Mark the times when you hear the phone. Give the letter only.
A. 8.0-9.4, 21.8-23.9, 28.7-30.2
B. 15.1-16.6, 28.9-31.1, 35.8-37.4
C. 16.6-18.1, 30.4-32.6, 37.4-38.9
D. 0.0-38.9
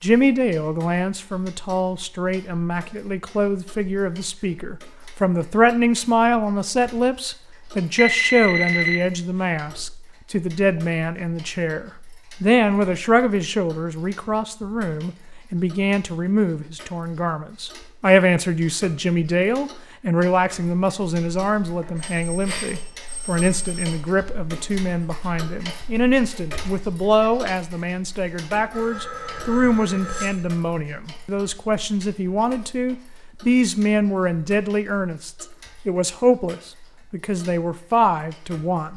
A.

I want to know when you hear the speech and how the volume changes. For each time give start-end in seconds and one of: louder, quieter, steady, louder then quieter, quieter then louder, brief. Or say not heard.
0.0-38.9 steady.